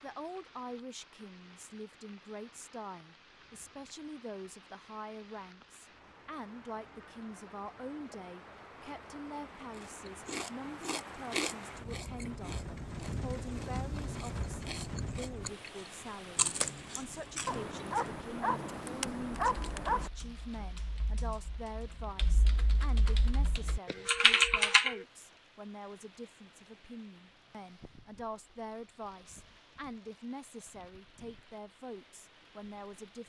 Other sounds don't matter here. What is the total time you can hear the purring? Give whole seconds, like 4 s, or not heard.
not heard.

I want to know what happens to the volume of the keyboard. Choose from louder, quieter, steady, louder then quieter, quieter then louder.
louder.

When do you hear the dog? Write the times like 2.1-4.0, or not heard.
17.4-20.1.